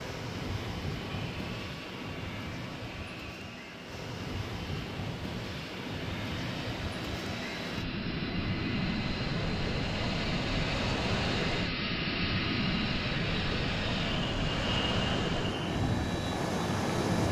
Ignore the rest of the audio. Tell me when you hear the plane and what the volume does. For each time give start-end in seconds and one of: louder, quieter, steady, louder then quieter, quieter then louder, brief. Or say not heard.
0.0-17.2 louder.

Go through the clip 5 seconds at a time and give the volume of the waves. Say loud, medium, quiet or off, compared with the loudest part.
medium, loud, loud, loud.